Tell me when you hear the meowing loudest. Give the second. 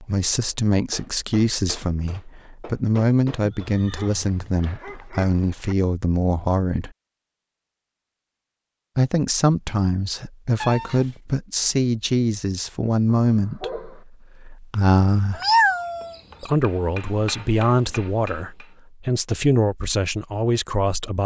16 s.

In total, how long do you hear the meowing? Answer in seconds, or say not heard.
2 s.